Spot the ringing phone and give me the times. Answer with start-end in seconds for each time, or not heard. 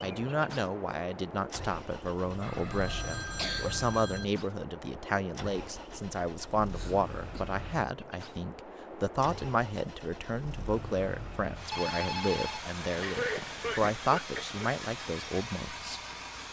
2.2-4.2, 11.7-14.2.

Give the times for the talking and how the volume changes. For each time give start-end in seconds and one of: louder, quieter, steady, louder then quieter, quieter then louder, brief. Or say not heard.
0.0-16.0 steady.